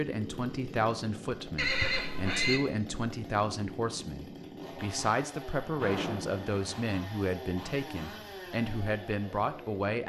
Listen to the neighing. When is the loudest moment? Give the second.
2 s.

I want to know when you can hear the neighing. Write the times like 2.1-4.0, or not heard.
1.6-2.6, 5.8-6.8.